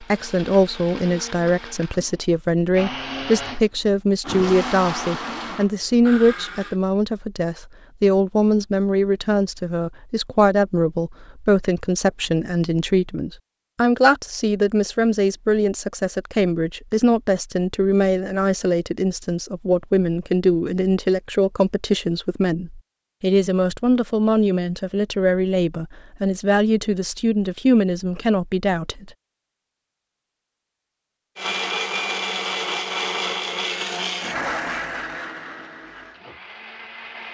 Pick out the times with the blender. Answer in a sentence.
The blender can be heard from 0.0 to 6.8 s and from 31.4 to 37.2 s.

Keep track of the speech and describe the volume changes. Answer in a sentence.
The volume of the speech stays about the same.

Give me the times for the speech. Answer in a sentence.
You can hear the speech from 0.0 to 29.1 s.